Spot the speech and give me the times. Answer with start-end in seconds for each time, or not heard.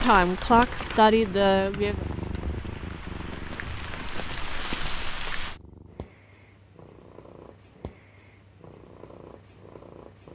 0.0-2.0.